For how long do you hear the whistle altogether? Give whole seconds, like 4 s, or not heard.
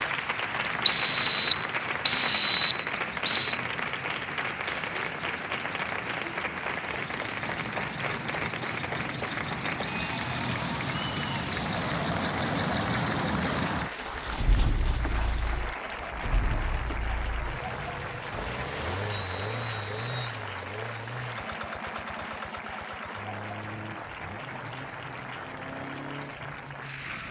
4 s.